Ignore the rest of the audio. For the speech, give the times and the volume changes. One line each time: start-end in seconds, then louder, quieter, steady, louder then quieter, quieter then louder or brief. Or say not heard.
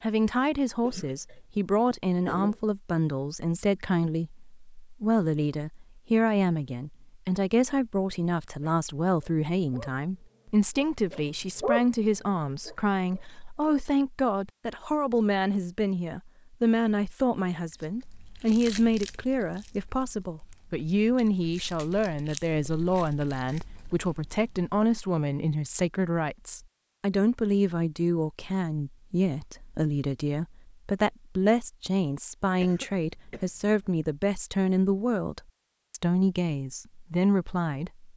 0.0-38.1 steady.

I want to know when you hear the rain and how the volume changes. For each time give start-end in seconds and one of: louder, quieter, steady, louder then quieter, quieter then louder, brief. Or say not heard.
not heard.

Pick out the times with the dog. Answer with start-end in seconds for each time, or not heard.
8.6-13.8.